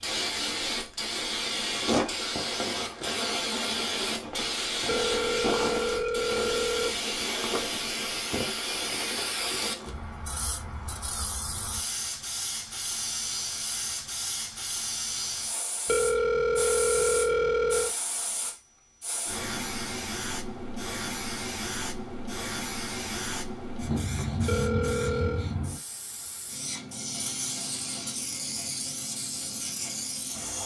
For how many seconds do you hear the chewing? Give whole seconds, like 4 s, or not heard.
not heard.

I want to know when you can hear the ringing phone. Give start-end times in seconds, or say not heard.
4.8-7.0, 15.8-17.9, 24.4-25.5.